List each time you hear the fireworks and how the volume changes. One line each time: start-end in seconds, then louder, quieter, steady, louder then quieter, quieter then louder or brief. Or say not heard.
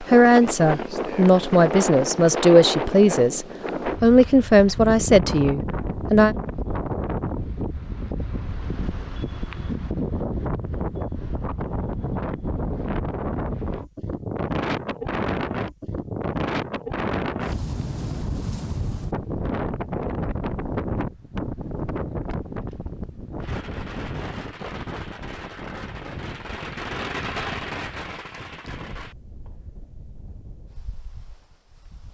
23.4-29.6 louder then quieter.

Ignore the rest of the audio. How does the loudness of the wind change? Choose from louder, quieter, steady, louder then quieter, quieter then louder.
quieter.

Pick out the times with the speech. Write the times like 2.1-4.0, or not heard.
0.0-6.3.